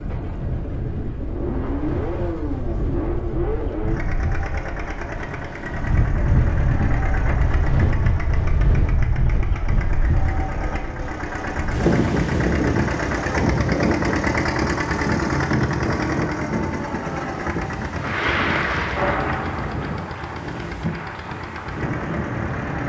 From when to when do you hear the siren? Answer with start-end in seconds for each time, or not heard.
not heard.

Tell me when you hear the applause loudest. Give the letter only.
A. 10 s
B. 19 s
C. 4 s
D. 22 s
B.